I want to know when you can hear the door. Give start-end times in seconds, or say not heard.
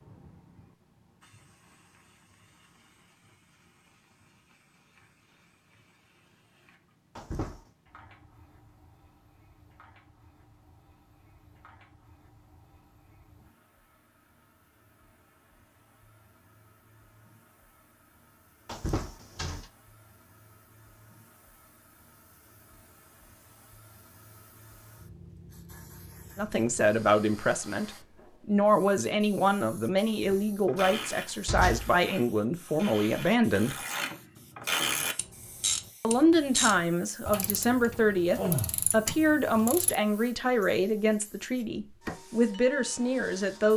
7.2-7.7, 18.6-19.7, 30.2-32.0.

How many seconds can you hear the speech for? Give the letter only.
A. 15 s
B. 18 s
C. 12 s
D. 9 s
A.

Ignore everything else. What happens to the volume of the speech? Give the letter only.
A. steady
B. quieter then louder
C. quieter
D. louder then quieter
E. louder
A.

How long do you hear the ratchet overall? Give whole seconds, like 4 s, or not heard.
9 s.